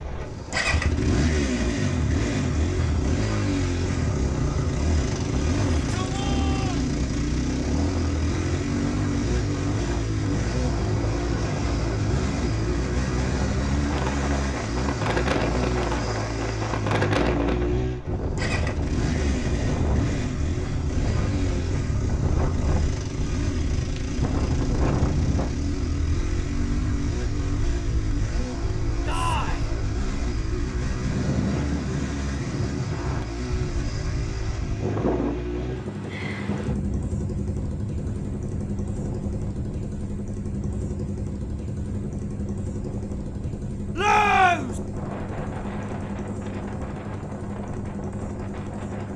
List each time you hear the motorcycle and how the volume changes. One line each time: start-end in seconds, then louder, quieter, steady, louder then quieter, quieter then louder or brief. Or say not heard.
0.0-49.1 quieter.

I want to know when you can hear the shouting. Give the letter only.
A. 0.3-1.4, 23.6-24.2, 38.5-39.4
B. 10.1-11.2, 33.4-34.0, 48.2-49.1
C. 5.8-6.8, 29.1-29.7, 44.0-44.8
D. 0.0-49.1
C.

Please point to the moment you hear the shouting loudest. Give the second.
44 s.